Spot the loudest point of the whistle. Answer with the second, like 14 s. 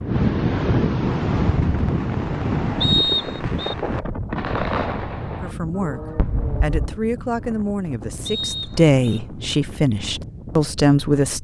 3 s.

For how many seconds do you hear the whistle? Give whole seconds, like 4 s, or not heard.
2 s.